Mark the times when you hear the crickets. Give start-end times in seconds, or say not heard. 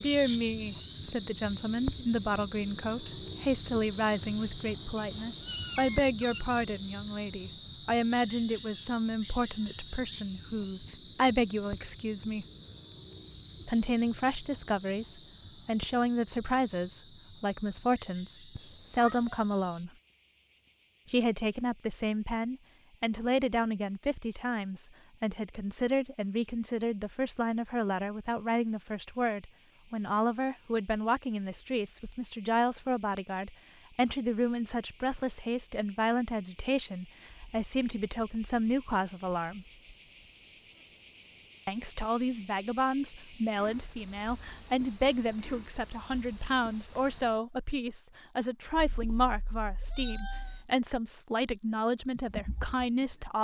0.0-53.3.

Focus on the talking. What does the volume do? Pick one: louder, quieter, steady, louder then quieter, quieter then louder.
steady.